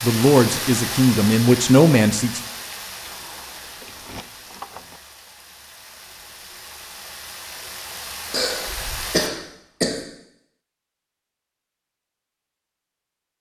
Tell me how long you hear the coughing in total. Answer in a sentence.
You can hear the coughing for 2 seconds altogether.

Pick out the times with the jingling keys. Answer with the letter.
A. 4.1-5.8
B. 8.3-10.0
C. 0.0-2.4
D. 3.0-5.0
D.